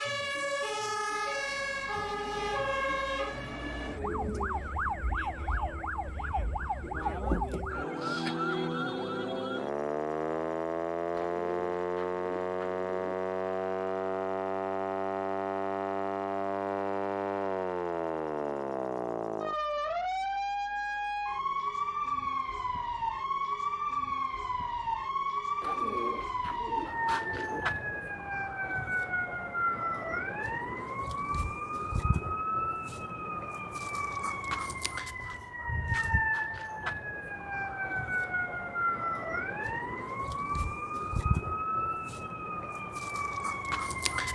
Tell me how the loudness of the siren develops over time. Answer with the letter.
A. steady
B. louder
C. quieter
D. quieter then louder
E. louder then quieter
A.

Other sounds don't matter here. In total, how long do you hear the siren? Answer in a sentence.
The siren can be heard for 44 seconds in total.